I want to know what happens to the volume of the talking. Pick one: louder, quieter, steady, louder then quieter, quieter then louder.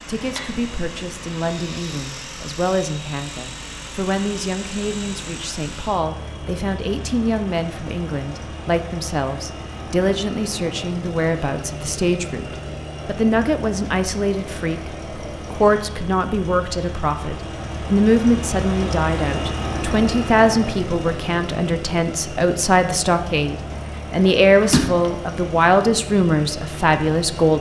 louder.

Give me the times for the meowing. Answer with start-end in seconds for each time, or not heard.
23.7-25.1.